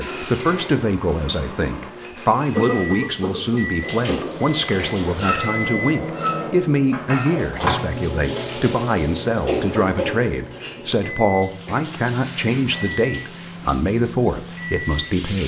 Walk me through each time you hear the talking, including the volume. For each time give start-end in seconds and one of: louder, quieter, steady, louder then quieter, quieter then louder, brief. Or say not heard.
0.0-15.4 steady.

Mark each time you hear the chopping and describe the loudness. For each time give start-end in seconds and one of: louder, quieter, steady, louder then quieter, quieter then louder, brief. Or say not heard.
not heard.